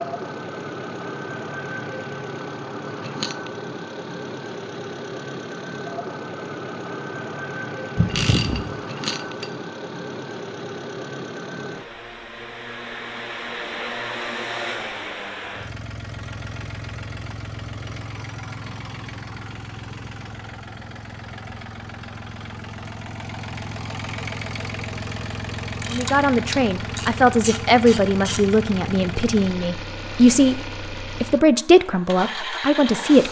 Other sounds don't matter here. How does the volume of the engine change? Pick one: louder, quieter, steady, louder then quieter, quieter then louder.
steady.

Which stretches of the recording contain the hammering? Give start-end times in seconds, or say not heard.
not heard.